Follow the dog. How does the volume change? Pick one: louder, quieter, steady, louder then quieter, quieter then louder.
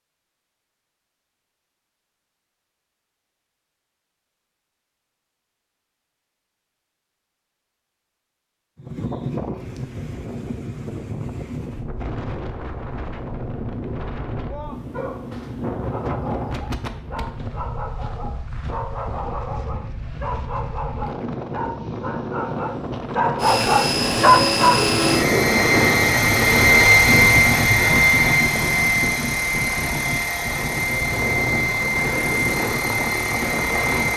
louder.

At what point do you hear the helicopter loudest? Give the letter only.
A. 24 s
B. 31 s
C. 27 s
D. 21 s
C.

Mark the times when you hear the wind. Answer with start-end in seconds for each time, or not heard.
8.8-34.1.